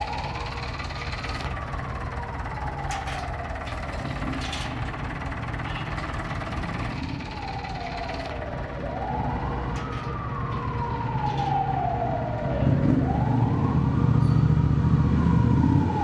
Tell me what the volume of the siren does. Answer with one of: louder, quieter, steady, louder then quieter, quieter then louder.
louder.